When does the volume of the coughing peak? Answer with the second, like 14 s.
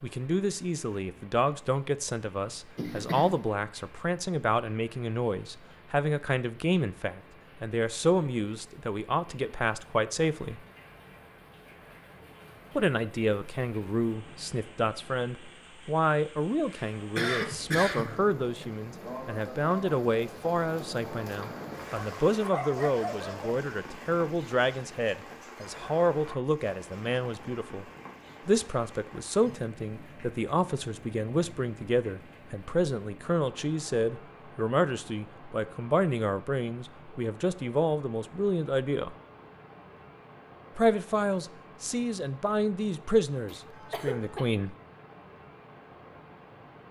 17 s.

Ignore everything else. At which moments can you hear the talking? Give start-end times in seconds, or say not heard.
0.0-10.6, 12.8-27.9, 28.4-39.1, 40.8-44.8.